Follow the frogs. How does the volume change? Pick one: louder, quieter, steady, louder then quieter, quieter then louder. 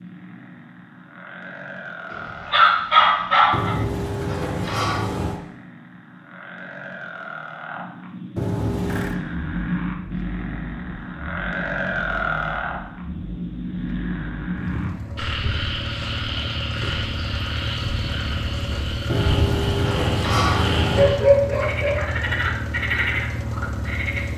louder.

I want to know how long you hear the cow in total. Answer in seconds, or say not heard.
not heard.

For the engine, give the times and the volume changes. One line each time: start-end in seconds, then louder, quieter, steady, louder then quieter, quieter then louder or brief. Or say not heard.
8.8-24.3 louder.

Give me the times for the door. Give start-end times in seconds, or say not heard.
3.5-5.4, 8.3-9.2, 19.1-21.1.